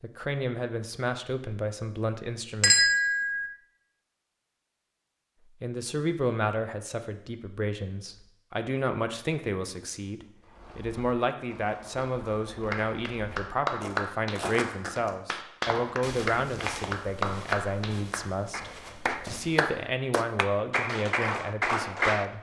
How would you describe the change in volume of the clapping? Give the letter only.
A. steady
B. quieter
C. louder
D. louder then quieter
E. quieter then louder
A.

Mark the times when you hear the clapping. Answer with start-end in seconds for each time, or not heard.
12.7-22.2.